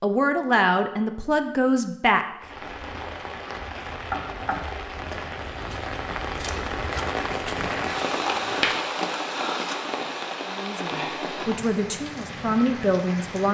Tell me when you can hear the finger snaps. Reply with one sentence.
You can hear the finger snaps from 7.9 to 8.8 s.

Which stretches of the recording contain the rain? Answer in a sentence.
You can hear the rain from 2.4 to 13.5 s.